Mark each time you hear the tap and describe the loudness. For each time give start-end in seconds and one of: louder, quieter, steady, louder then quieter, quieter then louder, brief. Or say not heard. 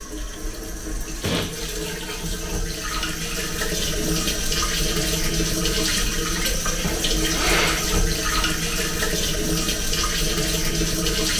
0.0-11.3 louder.